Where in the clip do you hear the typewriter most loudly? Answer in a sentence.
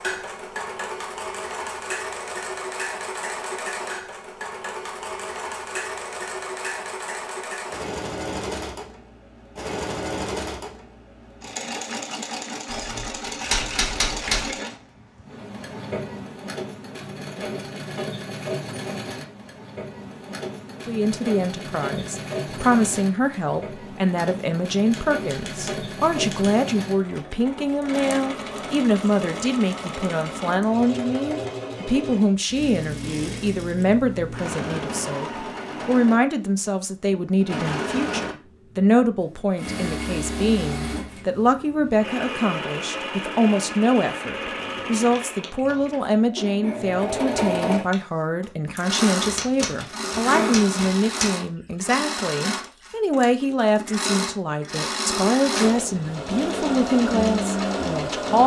The volume of the typewriter peaks at 14 seconds.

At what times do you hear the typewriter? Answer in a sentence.
The typewriter can be heard from 12.7 to 14.5 s, from 24.9 to 26.5 s and from 49.2 to 51.3 s.